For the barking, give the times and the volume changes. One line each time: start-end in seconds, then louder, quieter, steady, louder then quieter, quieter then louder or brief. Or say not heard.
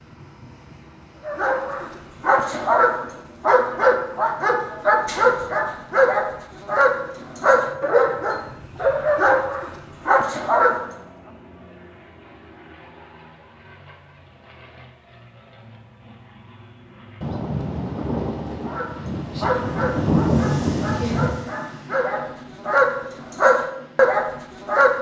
1.2-10.9 steady
18.6-24.9 quieter then louder.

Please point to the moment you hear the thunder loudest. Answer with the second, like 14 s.
20 s.